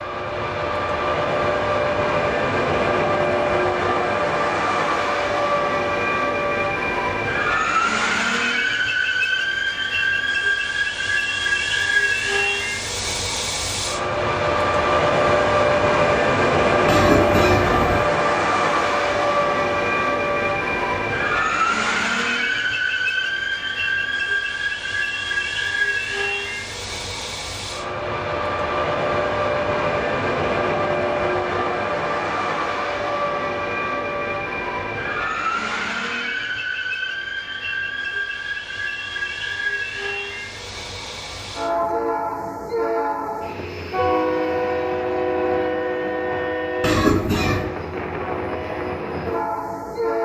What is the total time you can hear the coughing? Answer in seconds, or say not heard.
2 s.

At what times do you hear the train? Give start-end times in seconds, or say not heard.
0.0-50.2.